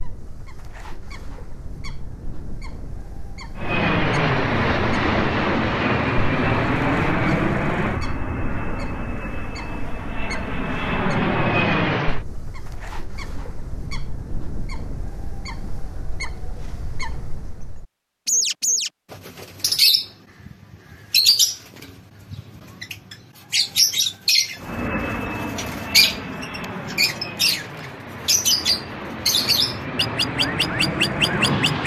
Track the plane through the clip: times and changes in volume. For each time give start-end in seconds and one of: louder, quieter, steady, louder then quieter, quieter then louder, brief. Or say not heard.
3.5-12.2 quieter then louder
24.6-31.8 quieter then louder.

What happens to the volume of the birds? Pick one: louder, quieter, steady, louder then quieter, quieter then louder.
louder.